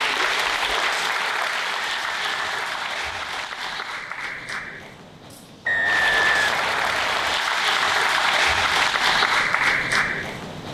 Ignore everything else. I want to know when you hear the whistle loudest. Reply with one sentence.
The loudest moment of the whistle is at 6 seconds.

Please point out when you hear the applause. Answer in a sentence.
You can hear the applause from 0.0 to 10.6 s.